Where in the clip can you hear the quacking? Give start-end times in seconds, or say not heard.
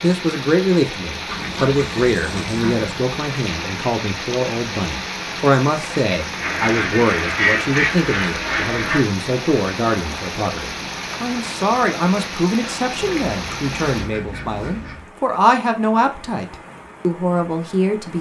1.2-3.0, 6.4-9.1, 12.9-15.1.